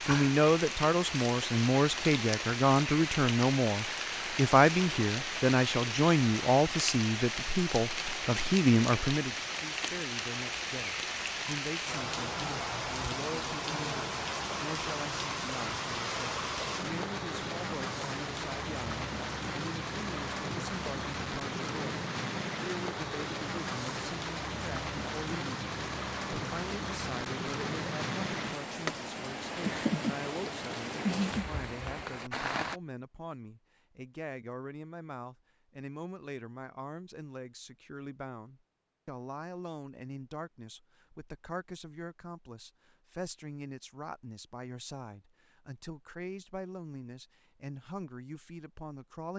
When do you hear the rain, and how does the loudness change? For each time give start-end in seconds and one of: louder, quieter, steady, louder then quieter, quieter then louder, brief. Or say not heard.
0.0-32.8 steady.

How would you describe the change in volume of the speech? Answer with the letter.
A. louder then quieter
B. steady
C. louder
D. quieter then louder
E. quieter
E.